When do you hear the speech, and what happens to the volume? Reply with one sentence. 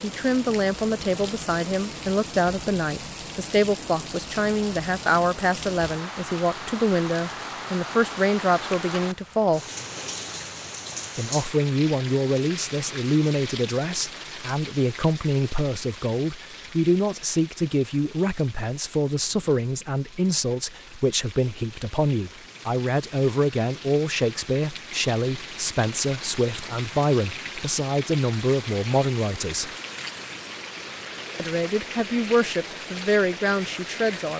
The speech can be heard from 0.0 to 9.7 s, at a steady volume; from 11.2 to 29.7 s, at a steady volume; and briefly from 31.4 to 34.3 s.